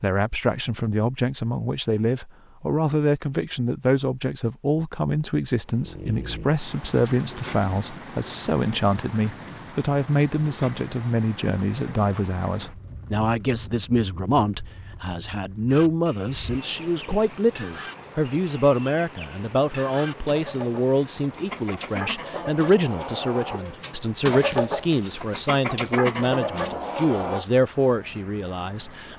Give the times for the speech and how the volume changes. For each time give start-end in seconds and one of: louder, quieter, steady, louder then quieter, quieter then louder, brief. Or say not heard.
0.0-29.1 steady.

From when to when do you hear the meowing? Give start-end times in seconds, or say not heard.
not heard.